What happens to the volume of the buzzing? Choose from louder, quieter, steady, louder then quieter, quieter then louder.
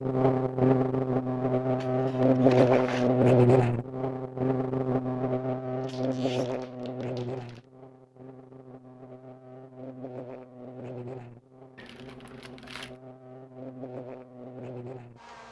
quieter.